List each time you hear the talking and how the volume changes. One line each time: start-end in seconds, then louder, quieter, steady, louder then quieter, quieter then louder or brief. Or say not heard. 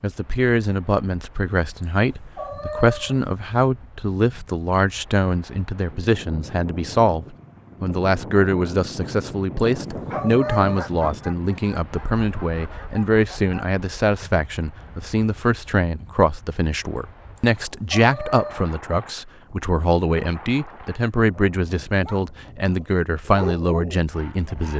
0.0-24.7 steady.